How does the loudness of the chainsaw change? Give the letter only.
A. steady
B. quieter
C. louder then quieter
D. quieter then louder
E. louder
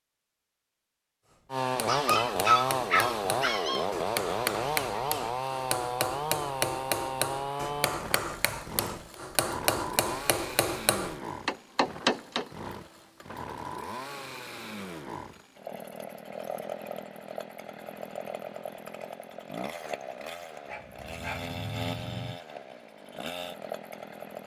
B.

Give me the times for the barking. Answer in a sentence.
You can hear the barking from 1.9 to 3.9 s and from 20.6 to 22.4 s.